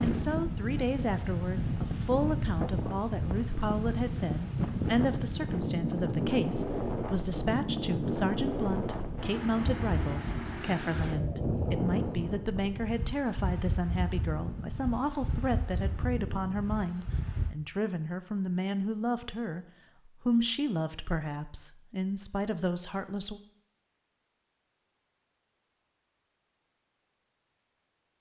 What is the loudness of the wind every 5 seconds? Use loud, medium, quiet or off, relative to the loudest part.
loud, loud, loud, medium, off, off.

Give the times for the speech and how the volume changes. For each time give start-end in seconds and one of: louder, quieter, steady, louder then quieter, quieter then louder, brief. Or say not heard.
0.0-23.4 steady.